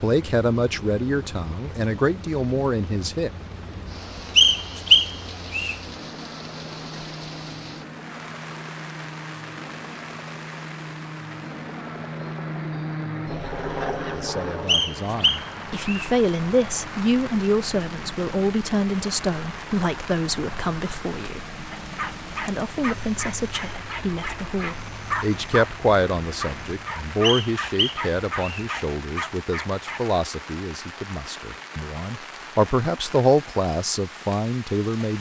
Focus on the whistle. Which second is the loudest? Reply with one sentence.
The loudest moment of the whistle is at 5 seconds.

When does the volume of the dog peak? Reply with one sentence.
The loudest moment of the dog is at 25 seconds.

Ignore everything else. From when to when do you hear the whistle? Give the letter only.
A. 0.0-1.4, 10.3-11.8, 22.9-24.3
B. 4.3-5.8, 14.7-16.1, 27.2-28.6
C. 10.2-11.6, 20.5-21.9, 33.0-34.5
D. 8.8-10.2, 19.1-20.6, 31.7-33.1
B.